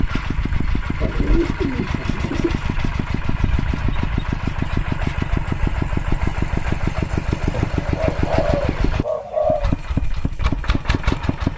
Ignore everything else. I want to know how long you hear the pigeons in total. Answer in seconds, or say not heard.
4 s.